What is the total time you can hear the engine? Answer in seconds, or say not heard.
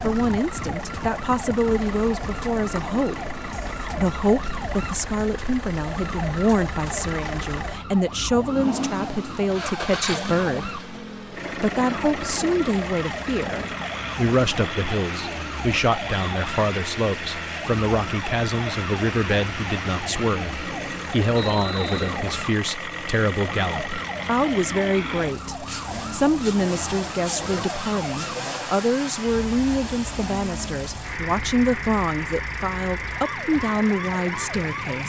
35 s.